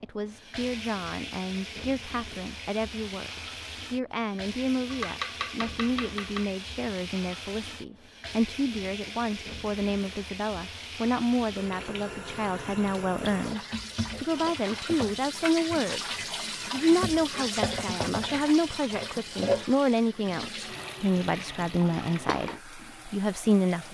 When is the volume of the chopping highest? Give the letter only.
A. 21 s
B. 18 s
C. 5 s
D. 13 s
C.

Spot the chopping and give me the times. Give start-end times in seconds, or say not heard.
4.8-6.5.